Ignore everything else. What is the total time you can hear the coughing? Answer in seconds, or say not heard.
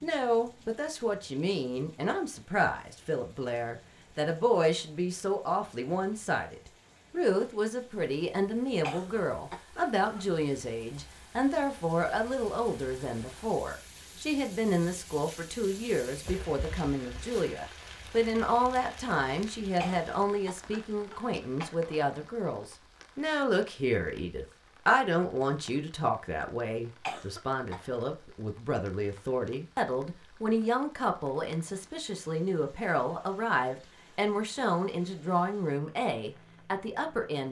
4 s.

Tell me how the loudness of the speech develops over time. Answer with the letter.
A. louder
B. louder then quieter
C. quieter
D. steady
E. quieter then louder
D.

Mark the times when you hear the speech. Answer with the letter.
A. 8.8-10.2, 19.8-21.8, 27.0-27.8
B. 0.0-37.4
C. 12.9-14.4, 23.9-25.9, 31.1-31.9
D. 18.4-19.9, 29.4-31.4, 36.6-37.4
B.